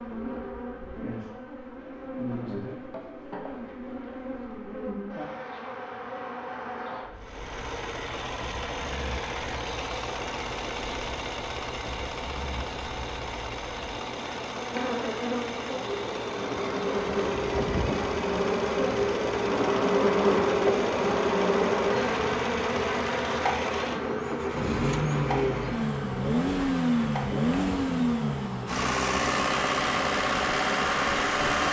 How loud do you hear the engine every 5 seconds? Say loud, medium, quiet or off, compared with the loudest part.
off, medium, medium, medium, medium, loud, loud.